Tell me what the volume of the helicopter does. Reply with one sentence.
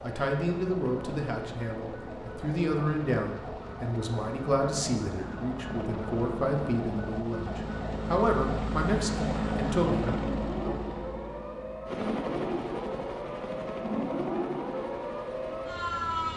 The volume of the helicopter goes up, then down.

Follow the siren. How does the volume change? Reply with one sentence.
The volume of the siren goes up.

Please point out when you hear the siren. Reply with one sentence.
The siren can be heard from 0.0 to 16.3 s.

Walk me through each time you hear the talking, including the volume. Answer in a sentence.
The talking can be heard from 0.0 to 10.8 s, at a steady volume.